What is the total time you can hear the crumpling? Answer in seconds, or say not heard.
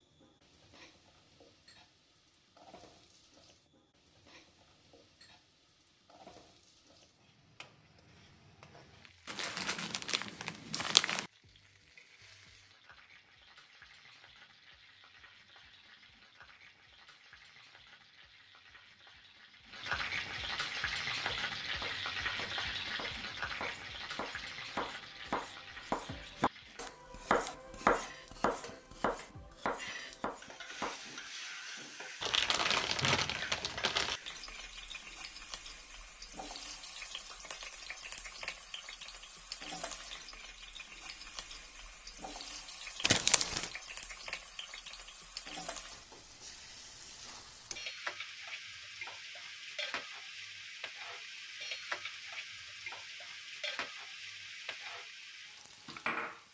5 s.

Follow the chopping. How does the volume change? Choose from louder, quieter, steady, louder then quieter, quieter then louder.
louder then quieter.